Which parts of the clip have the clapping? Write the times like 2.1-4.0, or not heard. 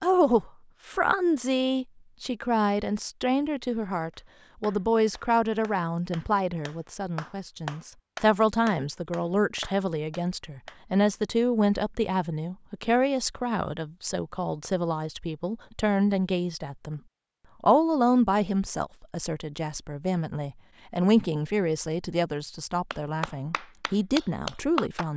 4.1-10.8, 22.9-25.1.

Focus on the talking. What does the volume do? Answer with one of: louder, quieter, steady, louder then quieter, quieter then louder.
steady.